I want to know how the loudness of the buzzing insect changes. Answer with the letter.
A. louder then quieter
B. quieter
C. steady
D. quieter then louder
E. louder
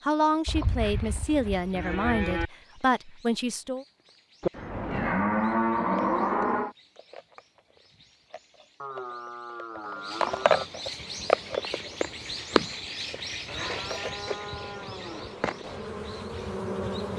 E.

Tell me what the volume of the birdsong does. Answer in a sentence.
The volume of the birdsong goes up, then down.